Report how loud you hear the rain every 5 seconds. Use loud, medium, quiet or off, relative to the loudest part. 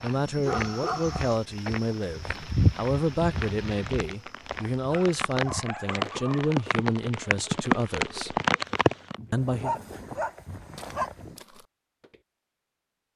quiet, loud, off.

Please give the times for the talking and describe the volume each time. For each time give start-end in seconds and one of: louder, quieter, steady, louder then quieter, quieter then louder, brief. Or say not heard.
0.0-8.4 steady
9.3-9.8 brief.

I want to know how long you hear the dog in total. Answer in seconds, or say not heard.
5 s.